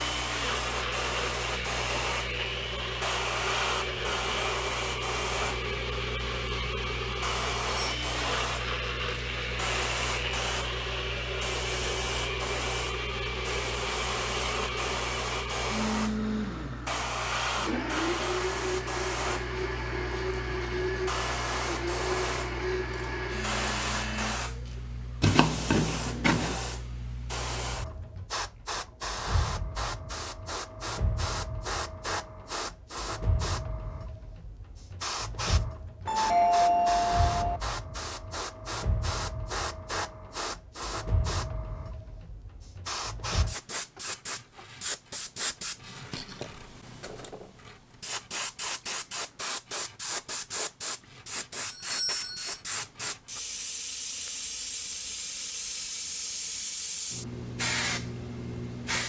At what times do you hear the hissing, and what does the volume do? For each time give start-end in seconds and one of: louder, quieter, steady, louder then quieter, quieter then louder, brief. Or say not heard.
0.0-59.0 steady.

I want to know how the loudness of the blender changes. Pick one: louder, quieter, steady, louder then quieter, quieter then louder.
steady.